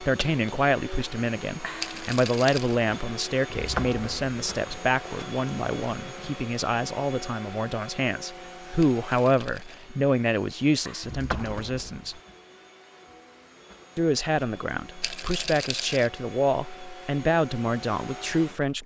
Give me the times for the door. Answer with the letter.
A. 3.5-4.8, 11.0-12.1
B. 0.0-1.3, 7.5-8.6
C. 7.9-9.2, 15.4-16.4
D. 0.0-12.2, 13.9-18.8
A.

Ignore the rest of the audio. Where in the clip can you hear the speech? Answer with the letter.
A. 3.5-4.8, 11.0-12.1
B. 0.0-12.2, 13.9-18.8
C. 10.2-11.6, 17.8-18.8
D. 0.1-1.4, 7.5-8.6
B.